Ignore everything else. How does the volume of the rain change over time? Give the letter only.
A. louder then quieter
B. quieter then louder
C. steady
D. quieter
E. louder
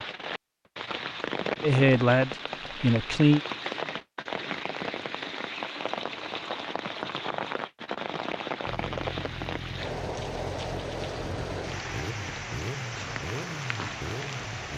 C.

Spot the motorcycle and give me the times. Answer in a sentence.
The motorcycle can be heard from 8.7 to 14.7 s.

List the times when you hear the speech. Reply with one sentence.
You can hear the speech from 1.6 to 3.4 s.